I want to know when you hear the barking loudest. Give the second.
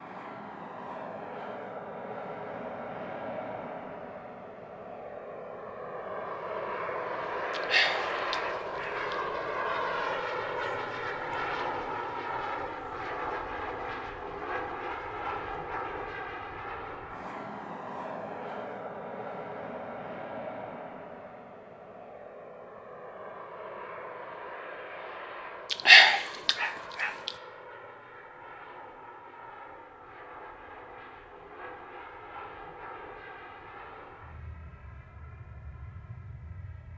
26 s.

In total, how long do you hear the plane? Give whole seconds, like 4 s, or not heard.
37 s.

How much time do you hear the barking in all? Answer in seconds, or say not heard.
3 s.